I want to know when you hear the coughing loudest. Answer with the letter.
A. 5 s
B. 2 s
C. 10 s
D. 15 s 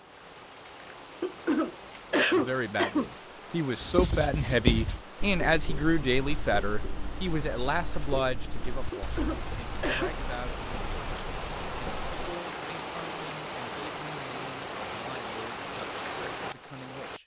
B.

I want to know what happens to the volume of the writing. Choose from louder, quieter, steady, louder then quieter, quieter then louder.
quieter.